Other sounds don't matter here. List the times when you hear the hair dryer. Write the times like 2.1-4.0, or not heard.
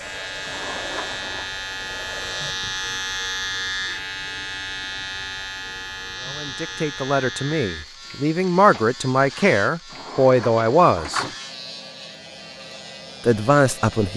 0.0-2.5.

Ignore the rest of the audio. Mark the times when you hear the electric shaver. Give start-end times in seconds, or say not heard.
0.0-14.1.